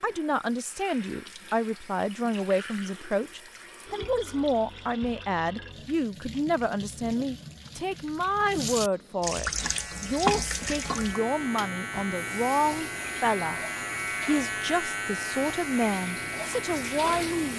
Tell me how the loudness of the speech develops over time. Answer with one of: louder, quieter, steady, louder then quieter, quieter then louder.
steady.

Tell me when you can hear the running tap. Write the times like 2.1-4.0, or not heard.
0.0-17.5.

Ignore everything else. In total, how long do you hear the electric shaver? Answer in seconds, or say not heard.
8 s.